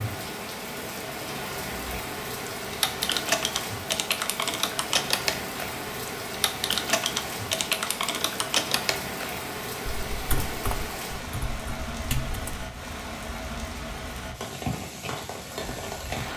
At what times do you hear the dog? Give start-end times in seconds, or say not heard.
not heard.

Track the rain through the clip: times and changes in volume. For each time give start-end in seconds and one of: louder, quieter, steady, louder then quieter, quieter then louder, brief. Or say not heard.
0.0-16.3 steady.